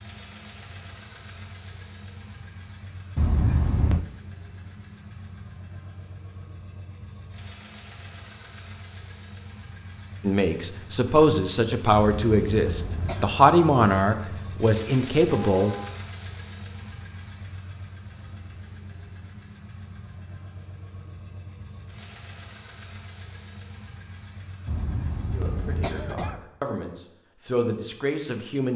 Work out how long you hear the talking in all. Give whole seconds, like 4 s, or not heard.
9 s.